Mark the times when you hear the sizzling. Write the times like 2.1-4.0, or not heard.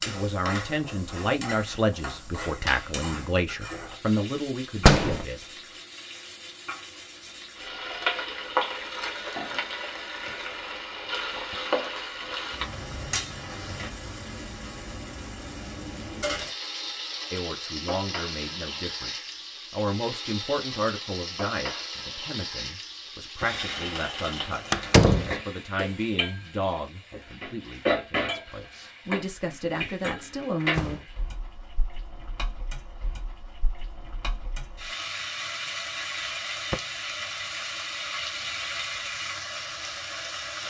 0.0-40.6.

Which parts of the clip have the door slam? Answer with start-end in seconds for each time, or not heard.
4.8-5.2, 24.7-25.4, 30.6-31.1.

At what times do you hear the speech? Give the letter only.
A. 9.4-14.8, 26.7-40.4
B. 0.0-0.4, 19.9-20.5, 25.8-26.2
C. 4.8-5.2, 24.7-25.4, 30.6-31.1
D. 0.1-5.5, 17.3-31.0
D.